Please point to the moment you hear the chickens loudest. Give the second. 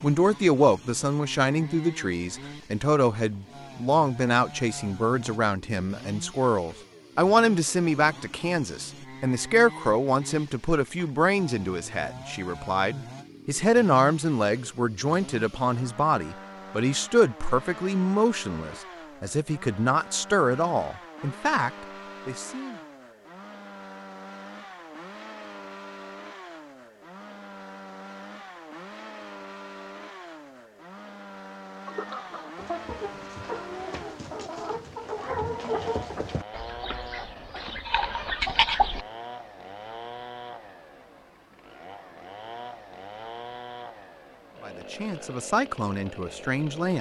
39 s.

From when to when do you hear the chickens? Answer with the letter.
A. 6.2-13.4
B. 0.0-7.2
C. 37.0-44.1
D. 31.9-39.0
D.